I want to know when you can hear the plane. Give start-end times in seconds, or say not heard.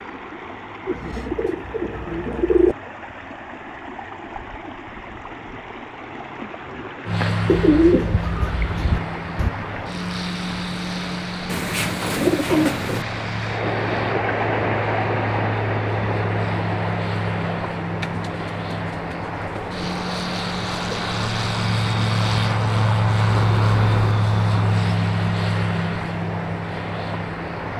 7.0-27.7.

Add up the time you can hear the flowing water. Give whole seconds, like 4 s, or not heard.
28 s.